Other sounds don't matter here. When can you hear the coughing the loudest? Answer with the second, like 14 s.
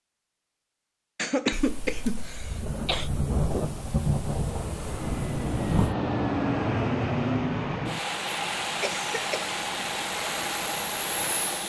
2 s.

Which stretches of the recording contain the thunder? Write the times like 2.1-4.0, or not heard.
1.5-6.0.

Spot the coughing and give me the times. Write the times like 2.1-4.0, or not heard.
1.1-3.1, 8.8-9.6.